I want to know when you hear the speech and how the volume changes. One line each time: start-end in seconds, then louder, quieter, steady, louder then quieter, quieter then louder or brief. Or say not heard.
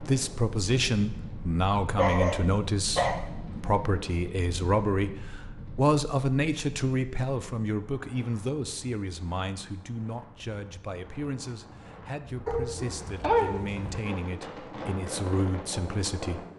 0.0-16.4 quieter.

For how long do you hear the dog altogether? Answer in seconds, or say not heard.
3 s.